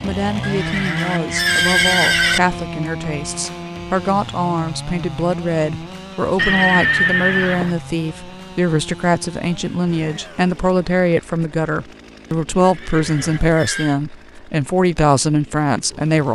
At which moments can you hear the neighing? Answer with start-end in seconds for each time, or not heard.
0.4-2.4, 6.3-7.8, 12.6-14.0.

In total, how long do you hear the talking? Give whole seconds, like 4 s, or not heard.
16 s.